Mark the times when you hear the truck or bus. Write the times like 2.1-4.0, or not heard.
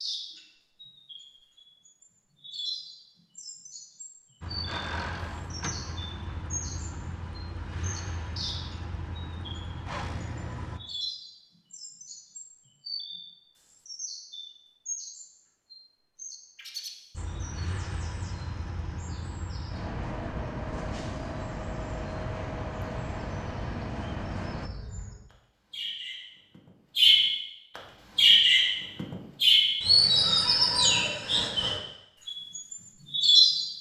4.4-10.8, 17.1-24.7.